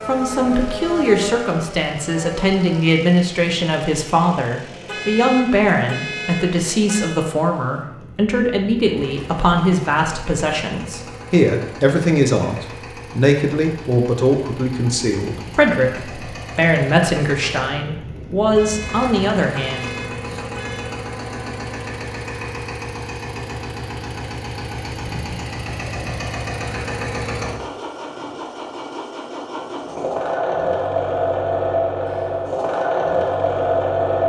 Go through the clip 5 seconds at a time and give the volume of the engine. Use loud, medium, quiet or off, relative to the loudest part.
quiet, quiet, quiet, quiet, medium, medium, loud.